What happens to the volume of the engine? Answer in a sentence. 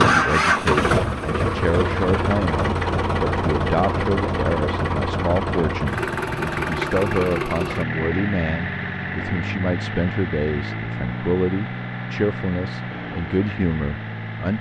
The loudness of the engine goes down.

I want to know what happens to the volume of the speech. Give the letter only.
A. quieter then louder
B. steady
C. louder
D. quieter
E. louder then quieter
B.